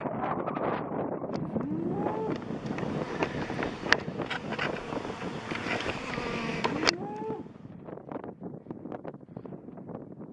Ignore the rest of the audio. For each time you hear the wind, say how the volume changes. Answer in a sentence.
You can hear the wind from 0.0 to 10.2 s, getting quieter.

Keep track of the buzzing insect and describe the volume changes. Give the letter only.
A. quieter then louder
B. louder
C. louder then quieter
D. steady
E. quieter
C.